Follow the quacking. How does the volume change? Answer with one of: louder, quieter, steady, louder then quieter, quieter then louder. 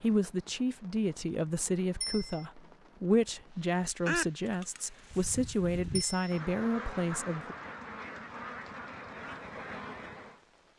louder.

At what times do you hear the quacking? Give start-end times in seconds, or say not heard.
4.0-10.3.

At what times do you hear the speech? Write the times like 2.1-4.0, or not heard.
0.0-7.5.